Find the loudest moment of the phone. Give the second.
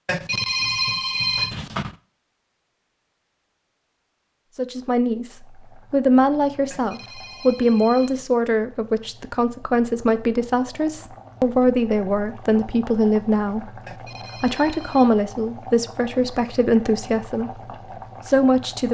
1 s.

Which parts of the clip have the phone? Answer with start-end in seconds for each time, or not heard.
0.1-1.9, 6.7-8.3, 13.8-15.1.